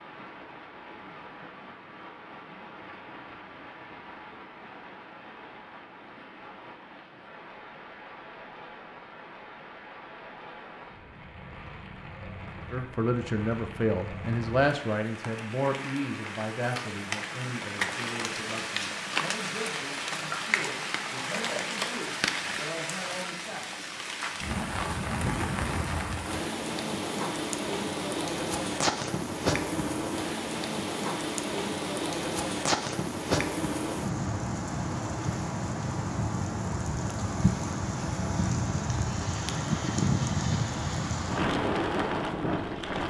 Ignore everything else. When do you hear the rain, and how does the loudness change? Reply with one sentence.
The rain can be heard from 0.0 to 43.0 s, getting louder.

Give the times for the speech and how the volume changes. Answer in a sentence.
You can hear the speech from 12.7 to 23.7 s, getting quieter.